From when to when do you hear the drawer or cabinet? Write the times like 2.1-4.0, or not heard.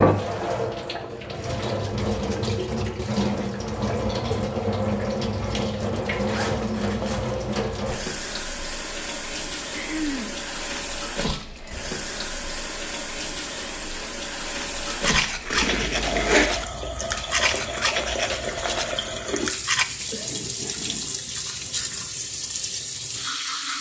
not heard.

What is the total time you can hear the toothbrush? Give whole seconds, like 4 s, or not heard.
5 s.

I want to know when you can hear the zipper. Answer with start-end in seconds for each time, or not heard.
6.1-7.5, 15.5-16.4.